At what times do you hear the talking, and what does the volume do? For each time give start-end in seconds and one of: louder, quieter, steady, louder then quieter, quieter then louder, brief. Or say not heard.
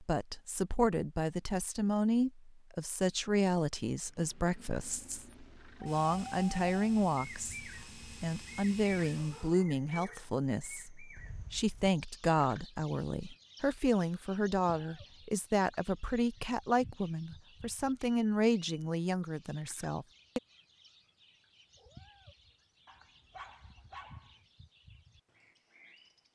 0.0-20.4 steady.